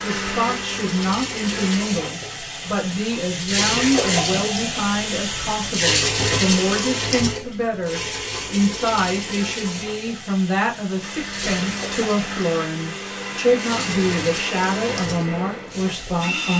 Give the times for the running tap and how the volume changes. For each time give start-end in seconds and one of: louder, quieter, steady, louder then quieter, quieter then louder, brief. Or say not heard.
0.0-16.4 louder then quieter.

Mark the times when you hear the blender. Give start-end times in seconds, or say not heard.
0.0-1.8, 11.0-16.5.